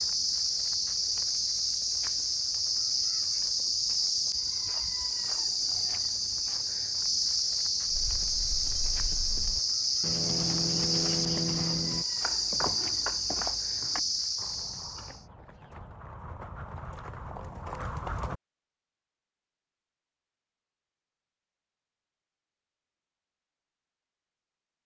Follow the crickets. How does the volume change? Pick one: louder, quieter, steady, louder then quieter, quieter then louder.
steady.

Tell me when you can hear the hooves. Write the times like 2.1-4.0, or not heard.
7.8-18.4.